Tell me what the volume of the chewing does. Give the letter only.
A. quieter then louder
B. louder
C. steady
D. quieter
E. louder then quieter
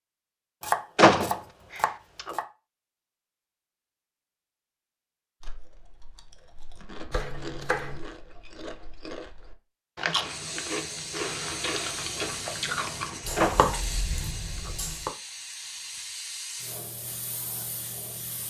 B.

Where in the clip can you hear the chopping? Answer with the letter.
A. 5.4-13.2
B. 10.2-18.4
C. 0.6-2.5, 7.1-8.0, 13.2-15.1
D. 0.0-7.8
C.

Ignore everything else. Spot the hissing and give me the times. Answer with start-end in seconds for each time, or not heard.
10.2-18.4.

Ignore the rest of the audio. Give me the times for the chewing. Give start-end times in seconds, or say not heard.
5.4-13.2.